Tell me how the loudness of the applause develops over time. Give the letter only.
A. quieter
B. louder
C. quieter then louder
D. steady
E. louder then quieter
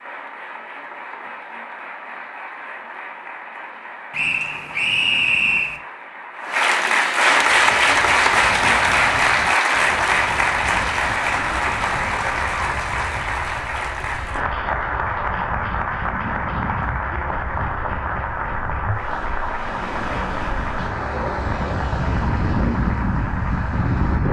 E.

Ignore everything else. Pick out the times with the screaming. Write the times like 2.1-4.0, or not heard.
not heard.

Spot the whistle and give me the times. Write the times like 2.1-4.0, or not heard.
4.1-5.8.